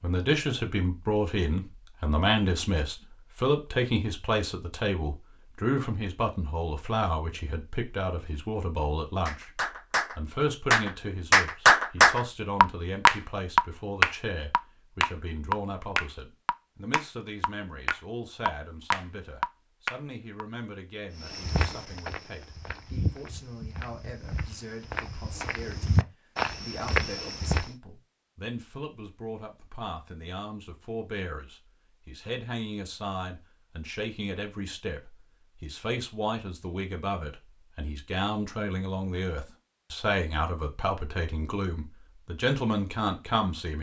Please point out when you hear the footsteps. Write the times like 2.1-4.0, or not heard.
21.2-27.7.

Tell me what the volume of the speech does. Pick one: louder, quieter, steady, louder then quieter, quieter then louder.
quieter then louder.